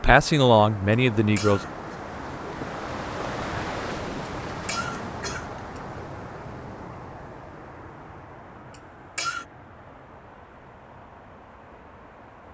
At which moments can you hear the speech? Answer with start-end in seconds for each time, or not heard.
0.0-1.6.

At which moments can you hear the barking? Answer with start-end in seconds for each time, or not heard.
not heard.